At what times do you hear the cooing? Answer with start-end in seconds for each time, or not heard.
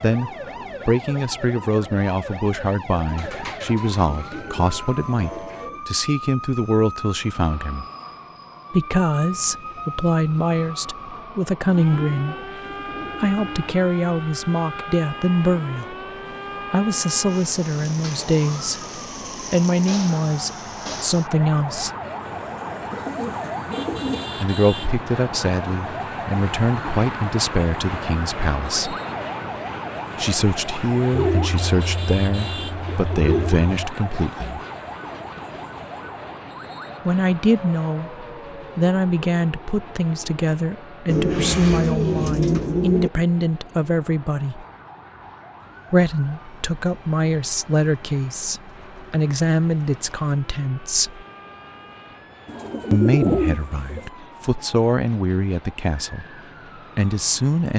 3.0-5.8, 11.7-13.8, 22.9-24.4, 31.1-33.6, 41.0-43.1, 52.5-54.1.